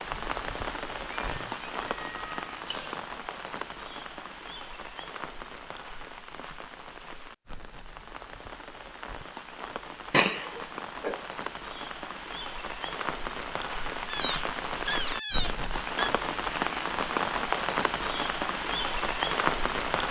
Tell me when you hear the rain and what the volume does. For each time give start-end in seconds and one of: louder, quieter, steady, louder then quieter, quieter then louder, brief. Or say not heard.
0.0-20.0 quieter then louder.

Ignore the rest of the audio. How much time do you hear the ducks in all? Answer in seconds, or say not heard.
not heard.